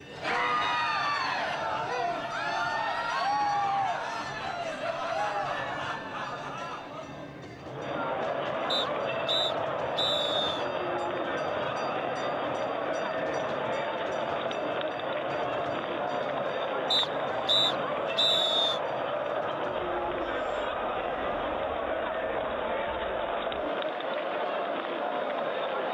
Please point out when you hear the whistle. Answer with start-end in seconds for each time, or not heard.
8.7-10.7, 16.9-18.8.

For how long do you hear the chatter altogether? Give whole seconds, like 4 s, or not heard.
26 s.